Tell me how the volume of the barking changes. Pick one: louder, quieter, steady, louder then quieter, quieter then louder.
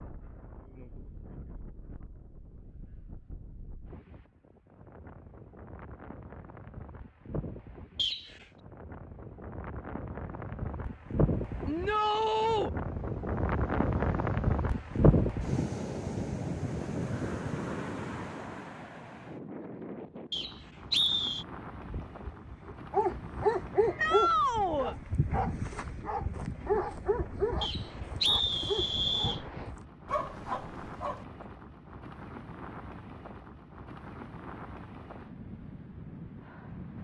quieter.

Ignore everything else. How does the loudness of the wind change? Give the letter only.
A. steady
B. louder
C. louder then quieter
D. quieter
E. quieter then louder
C.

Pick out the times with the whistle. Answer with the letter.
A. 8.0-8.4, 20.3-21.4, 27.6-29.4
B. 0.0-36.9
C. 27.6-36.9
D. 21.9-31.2
A.